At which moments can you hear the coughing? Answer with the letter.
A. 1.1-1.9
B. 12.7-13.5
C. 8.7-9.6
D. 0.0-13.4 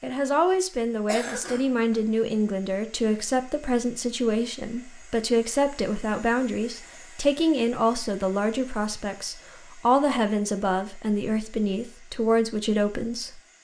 A.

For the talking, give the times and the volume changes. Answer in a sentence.
The talking can be heard from 0.0 to 13.4 s, at a steady volume.